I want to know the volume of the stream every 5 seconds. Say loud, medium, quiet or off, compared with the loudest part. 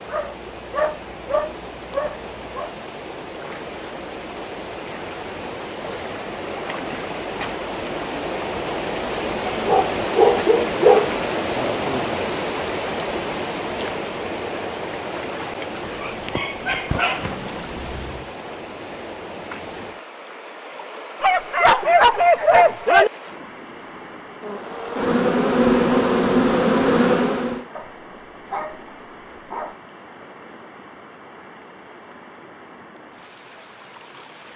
medium, loud, loud, medium, quiet, quiet, quiet.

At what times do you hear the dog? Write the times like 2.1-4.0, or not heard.
0.1-2.7, 9.5-11.1, 15.6-18.2, 21.2-23.1, 27.8-29.8.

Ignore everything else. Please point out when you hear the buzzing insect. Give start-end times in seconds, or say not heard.
24.4-27.6.